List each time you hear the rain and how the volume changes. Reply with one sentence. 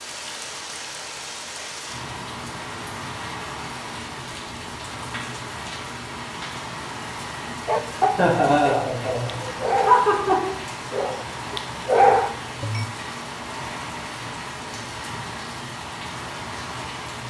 You can hear the rain from 0.0 to 17.2 s, at a steady volume.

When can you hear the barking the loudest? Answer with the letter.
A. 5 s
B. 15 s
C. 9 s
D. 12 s
D.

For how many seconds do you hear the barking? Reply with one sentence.
The barking can be heard for 5 seconds in total.